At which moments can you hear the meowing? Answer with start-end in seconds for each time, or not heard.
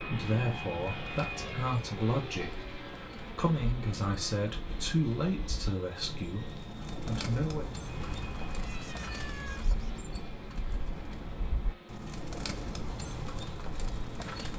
8.1-10.0.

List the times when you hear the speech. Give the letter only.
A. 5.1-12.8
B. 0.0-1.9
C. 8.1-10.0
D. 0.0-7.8
D.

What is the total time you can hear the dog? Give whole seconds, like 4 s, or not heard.
not heard.